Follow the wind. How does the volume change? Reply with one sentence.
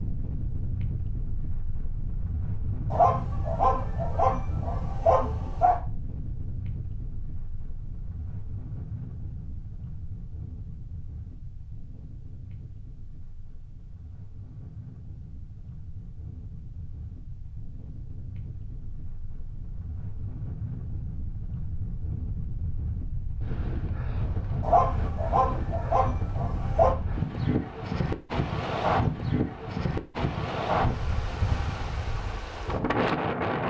The volume of the wind goes down, then up.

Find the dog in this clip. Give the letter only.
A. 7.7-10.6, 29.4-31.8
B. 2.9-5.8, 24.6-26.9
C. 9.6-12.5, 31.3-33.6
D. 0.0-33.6
B.